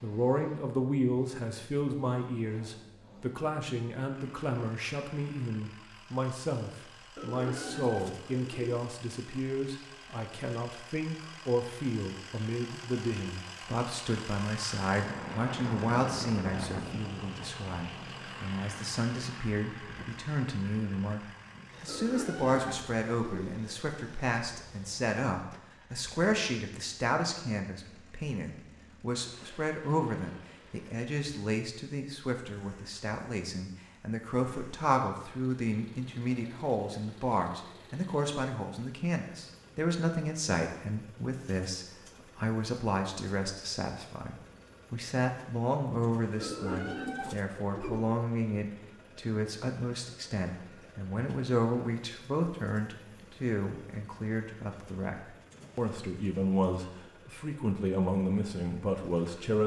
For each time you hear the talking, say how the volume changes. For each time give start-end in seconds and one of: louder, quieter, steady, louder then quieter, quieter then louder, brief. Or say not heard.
0.0-59.6 steady.